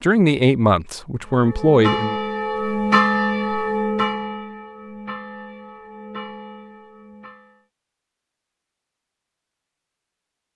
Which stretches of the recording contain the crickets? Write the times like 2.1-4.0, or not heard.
not heard.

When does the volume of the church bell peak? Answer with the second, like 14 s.
3 s.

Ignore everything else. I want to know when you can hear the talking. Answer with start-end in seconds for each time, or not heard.
0.0-2.1.